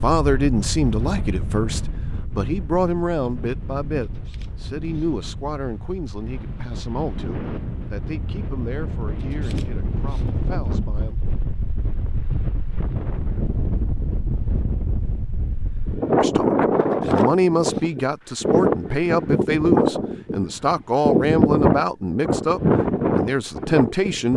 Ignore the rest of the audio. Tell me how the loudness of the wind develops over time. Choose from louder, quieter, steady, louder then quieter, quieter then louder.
louder.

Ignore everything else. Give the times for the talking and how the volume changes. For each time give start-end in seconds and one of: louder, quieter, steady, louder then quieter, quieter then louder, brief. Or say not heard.
0.0-11.2 quieter
16.2-24.3 steady.